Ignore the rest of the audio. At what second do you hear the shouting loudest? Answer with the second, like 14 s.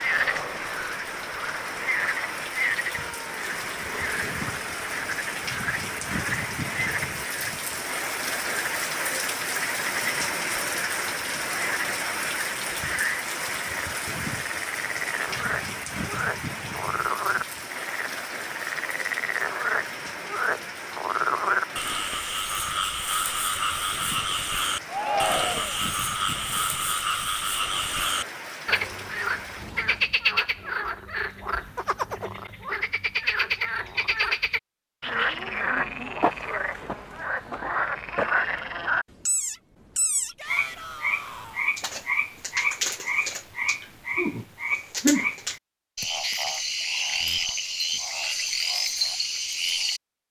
25 s.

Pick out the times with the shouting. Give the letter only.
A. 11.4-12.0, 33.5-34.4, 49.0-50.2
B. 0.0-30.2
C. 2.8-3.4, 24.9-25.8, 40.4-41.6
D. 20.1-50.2
C.